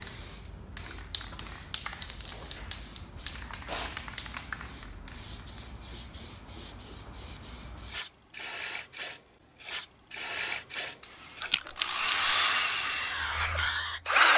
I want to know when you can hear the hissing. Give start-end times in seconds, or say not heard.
0.0-14.3.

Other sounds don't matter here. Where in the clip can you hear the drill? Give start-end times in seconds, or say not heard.
11.0-14.3.